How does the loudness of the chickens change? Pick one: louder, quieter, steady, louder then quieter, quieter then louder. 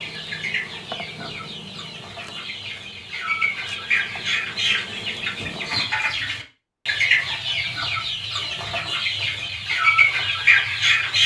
louder.